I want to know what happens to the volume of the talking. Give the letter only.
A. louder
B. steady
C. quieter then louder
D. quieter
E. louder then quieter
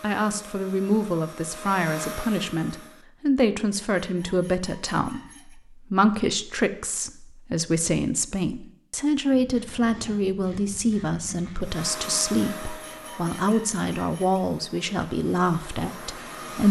B.